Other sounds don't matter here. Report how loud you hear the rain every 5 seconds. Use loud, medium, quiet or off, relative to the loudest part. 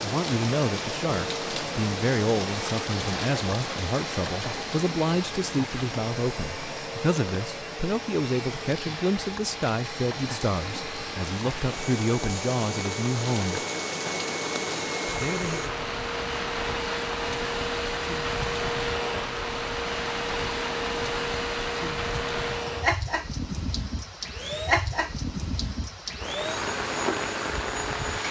loud, medium, loud, loud, loud, loud.